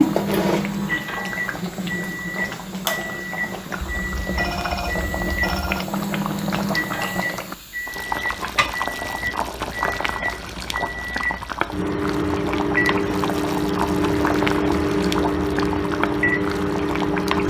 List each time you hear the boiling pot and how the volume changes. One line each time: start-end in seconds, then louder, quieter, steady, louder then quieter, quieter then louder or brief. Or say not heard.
0.0-17.4 steady.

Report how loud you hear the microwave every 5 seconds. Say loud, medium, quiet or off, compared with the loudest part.
medium, medium, loud, loud.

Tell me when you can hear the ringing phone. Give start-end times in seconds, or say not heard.
3.8-5.8.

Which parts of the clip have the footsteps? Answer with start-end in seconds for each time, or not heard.
not heard.